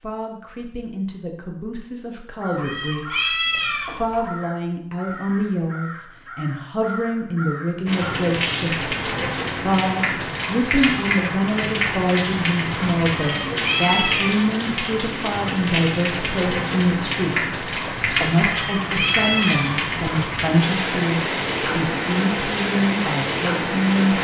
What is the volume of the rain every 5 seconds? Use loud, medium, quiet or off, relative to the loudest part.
off, loud, loud, loud, loud.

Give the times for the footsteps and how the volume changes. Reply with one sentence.
You can't hear the footsteps here.